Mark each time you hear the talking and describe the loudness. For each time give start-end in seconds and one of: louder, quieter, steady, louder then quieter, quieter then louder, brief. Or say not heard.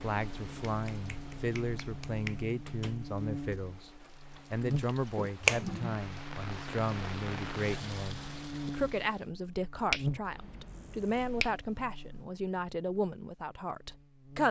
0.0-14.4 steady.